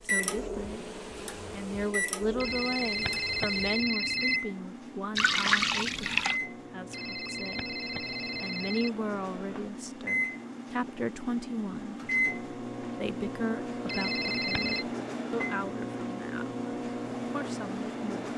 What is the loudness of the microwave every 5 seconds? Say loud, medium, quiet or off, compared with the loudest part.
loud, medium, loud, loud.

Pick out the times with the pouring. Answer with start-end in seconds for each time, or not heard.
5.2-6.4.